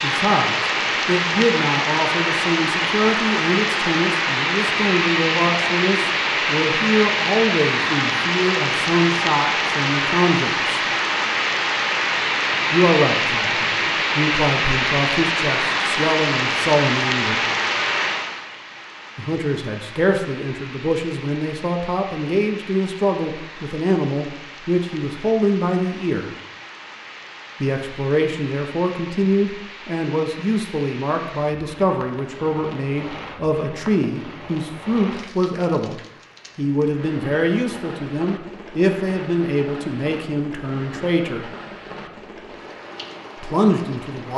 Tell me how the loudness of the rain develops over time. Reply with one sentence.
The volume of the rain goes down.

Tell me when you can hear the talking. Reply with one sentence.
You can hear the talking from 0.0 to 10.8 s, from 12.7 to 17.4 s, from 19.1 to 26.3 s, from 27.6 to 41.5 s and from 43.4 to 44.3 s.